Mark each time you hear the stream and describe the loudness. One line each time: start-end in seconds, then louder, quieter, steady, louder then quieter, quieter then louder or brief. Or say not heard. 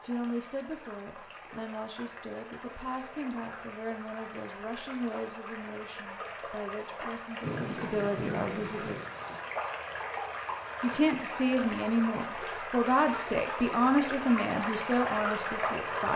0.0-16.1 louder.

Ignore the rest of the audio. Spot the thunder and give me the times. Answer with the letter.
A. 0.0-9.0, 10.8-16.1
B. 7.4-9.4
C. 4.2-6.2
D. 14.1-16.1
B.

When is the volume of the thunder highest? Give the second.
8 s.